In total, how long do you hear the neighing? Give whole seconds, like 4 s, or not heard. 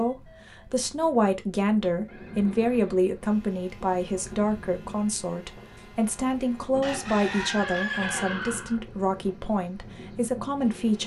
2 s.